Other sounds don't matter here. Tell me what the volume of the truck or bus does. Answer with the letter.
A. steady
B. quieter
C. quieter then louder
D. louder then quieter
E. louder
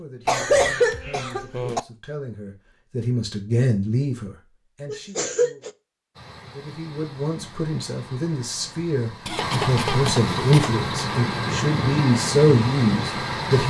E.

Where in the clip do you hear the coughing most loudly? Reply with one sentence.
The volume of the coughing peaks at 1 second.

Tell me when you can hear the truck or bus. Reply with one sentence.
You can hear the truck or bus from 6.2 to 13.6 s.